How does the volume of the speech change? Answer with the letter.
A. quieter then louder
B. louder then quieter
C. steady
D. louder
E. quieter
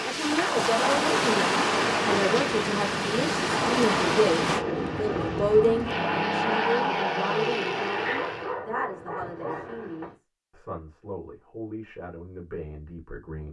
E.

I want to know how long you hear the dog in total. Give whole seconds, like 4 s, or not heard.
2 s.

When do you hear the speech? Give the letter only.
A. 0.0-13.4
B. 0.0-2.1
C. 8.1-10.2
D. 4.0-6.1
A.